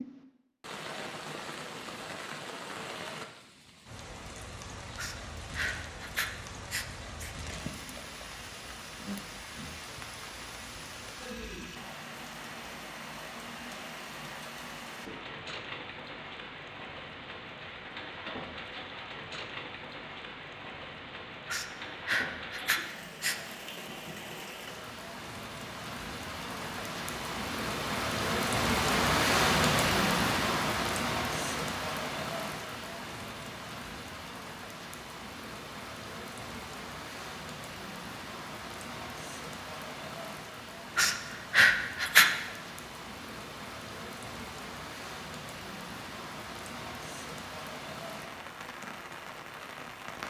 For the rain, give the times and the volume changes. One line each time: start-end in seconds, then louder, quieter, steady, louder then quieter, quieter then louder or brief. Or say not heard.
0.0-50.2 louder then quieter.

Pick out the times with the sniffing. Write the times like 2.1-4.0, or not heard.
5.0-7.3, 21.4-23.4, 41.0-42.3.